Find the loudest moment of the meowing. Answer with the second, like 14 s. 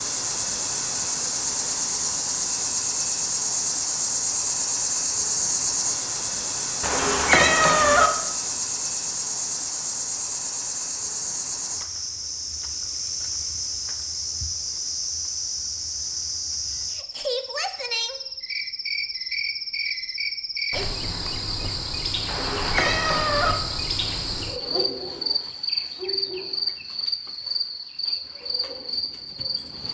7 s.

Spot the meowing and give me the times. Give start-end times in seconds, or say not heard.
6.8-8.1, 22.2-23.6.